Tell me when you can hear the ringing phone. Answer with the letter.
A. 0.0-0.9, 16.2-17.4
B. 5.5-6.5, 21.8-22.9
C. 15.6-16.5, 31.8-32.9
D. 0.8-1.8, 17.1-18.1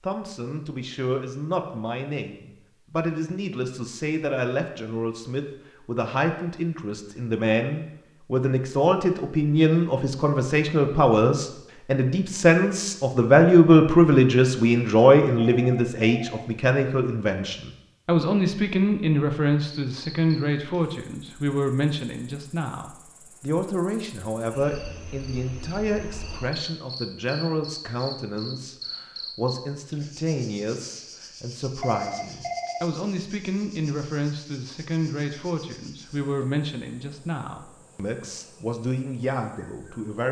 C.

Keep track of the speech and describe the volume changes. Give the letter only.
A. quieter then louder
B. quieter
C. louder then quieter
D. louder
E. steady
C.